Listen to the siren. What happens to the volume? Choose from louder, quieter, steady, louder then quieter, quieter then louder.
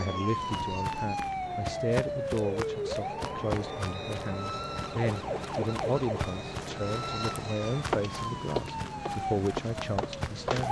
steady.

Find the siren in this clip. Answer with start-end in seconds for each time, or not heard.
0.0-10.6.